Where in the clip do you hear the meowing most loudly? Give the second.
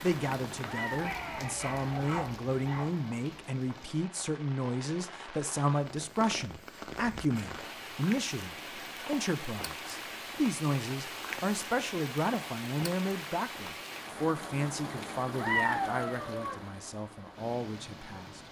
16 s.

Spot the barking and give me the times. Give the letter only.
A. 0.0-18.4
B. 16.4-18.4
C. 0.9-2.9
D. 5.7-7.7
C.